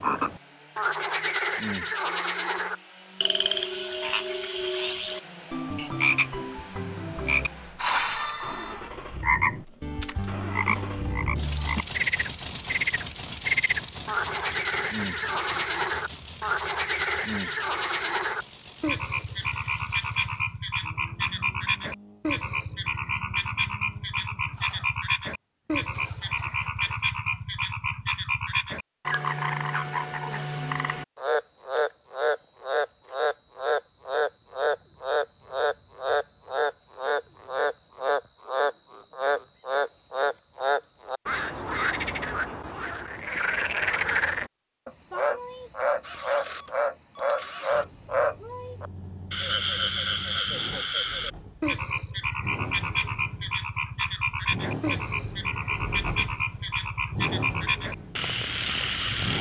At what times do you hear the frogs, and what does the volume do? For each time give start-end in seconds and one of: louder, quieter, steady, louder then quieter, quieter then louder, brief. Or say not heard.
0.0-59.3 steady.